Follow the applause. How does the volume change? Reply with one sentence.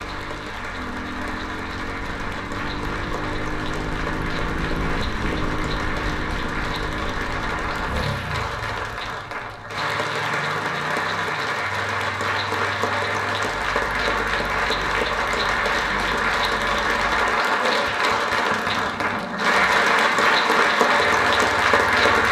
The volume of the applause goes up.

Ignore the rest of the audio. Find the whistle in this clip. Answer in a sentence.
The whistle can't be heard in this clip.